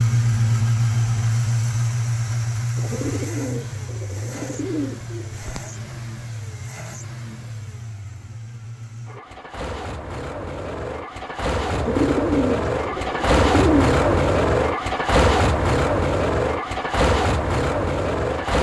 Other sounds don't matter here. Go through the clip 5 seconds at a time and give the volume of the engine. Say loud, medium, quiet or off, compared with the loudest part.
loud, quiet, loud, loud.